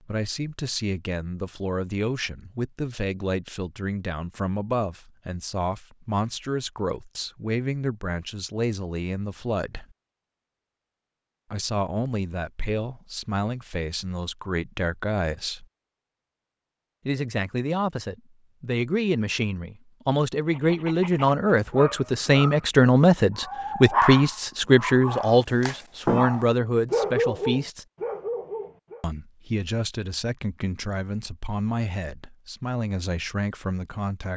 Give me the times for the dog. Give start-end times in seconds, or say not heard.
20.4-29.1.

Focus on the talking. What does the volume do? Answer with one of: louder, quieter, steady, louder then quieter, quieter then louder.
louder then quieter.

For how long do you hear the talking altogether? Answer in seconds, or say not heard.
30 s.